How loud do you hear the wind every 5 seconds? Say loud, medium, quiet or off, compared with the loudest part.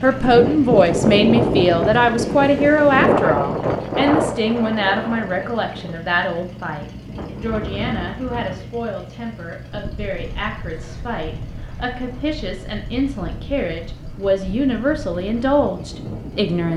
loud, quiet, quiet, quiet.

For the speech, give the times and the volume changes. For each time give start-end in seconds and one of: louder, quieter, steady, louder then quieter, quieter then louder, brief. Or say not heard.
0.0-16.7 quieter then louder.